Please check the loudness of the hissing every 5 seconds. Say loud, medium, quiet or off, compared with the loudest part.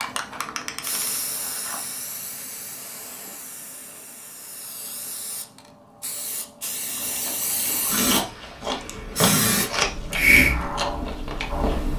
quiet, medium, loud.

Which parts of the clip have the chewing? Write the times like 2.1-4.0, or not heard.
6.9-11.9.